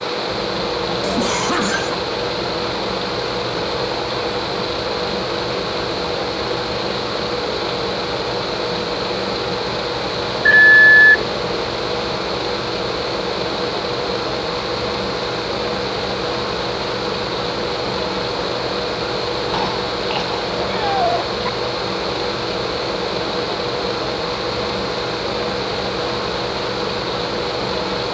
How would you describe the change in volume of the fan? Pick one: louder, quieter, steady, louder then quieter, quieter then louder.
steady.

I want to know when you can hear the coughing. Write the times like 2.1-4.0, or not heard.
1.0-2.0, 19.5-21.5.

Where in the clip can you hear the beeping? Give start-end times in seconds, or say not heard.
10.4-11.2.